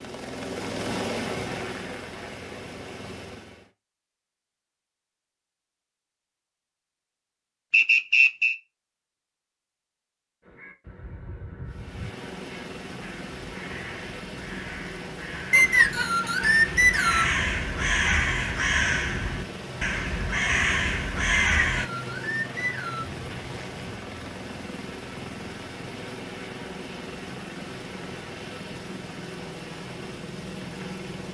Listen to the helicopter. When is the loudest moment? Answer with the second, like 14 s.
1 s.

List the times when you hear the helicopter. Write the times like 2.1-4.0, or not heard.
0.0-3.7, 11.7-31.2.